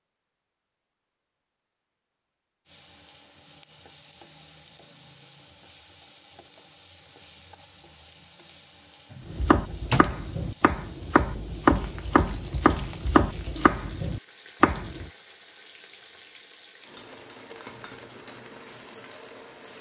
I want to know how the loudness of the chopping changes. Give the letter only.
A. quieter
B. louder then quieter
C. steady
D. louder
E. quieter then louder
D.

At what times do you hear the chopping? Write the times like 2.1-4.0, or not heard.
9.2-15.1.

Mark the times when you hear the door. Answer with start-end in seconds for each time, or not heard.
9.1-10.2.